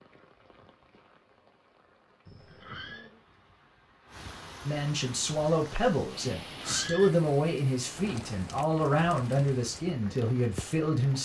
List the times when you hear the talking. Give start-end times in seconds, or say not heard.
4.7-11.2.